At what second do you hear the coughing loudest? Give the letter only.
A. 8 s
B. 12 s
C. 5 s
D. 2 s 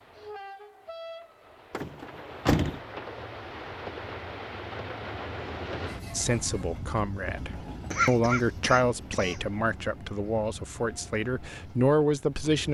A.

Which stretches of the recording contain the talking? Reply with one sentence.
You can hear the talking from 6.2 to 12.7 s.